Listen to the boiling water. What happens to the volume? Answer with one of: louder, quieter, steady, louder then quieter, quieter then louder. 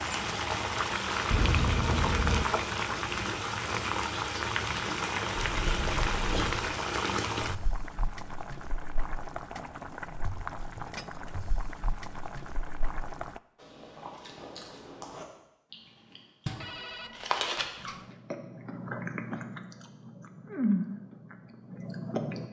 quieter.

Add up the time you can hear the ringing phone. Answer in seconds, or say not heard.
3 s.